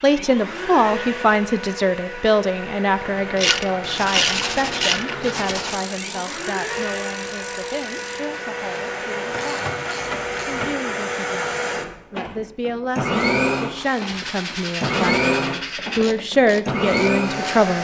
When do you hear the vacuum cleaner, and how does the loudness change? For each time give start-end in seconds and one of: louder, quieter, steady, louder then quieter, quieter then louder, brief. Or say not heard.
0.0-17.7 louder.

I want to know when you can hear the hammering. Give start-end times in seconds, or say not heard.
not heard.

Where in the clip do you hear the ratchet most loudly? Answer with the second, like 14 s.
4 s.